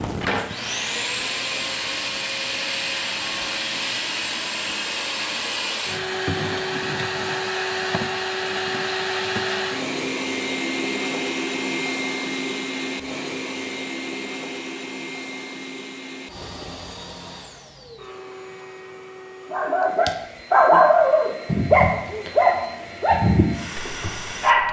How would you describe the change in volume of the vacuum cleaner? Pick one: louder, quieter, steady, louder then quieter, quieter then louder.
quieter.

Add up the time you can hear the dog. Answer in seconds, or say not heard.
5 s.